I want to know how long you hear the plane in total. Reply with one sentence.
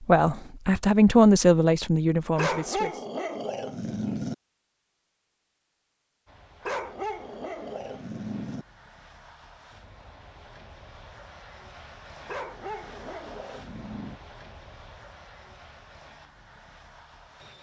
The plane can be heard for 11 seconds in total.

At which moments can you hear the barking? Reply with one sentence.
The barking can be heard from 2.4 to 4.3 s, from 6.6 to 8.7 s and from 12.2 to 14.2 s.